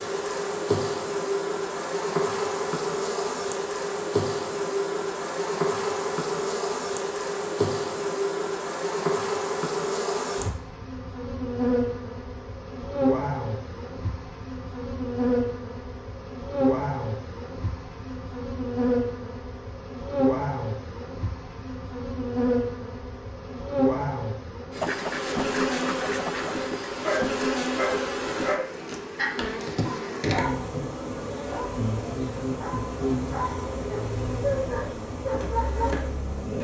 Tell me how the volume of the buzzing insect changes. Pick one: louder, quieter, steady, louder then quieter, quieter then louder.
steady.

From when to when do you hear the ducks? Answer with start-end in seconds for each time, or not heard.
24.8-26.6.